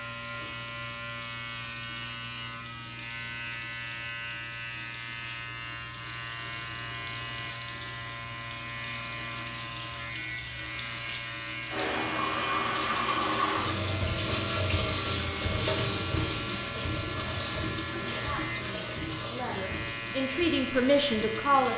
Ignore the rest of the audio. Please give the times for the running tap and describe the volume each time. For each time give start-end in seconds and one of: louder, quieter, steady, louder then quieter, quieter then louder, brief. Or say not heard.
0.1-21.7 louder then quieter.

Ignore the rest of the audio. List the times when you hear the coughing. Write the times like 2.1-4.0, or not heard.
not heard.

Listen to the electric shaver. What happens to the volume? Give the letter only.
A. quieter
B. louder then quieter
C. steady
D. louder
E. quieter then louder
C.